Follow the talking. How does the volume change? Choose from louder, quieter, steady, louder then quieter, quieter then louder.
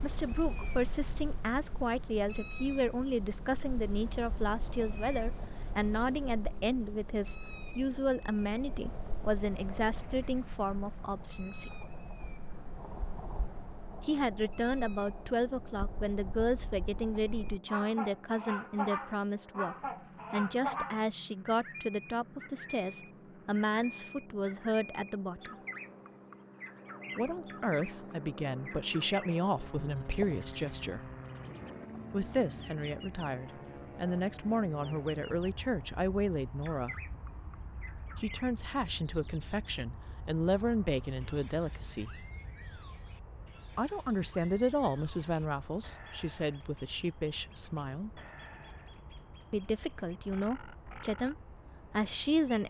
steady.